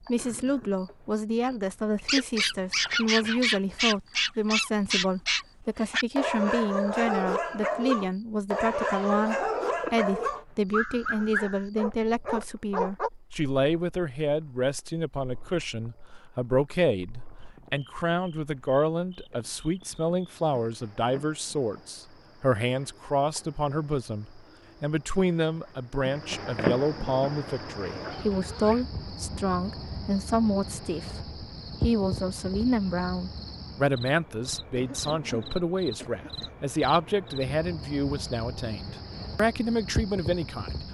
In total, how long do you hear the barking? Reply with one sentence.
You can hear the barking for 11 seconds altogether.